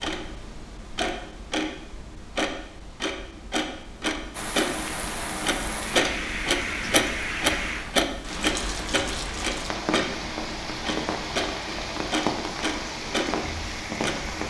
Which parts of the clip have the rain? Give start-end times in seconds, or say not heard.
4.3-14.4.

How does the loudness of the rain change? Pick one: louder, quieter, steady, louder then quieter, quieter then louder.
steady.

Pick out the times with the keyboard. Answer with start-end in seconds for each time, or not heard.
not heard.